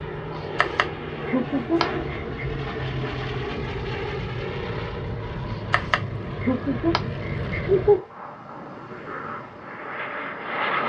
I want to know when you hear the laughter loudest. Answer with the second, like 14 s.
8 s.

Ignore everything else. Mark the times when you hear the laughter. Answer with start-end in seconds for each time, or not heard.
0.3-2.5, 5.5-8.1.